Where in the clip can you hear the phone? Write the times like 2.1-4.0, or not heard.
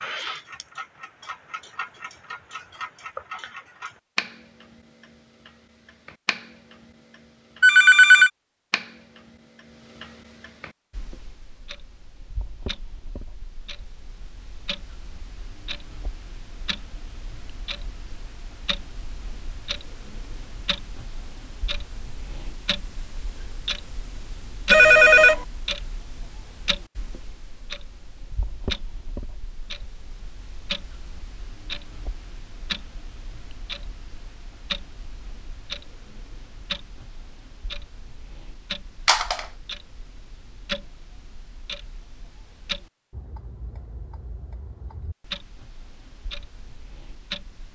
7.6-8.3, 24.7-25.4, 39.0-39.5.